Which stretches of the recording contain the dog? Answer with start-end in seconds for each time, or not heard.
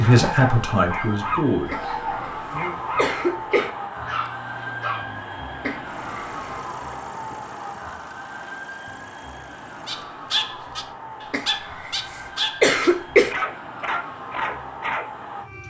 0.0-5.0, 9.8-15.1.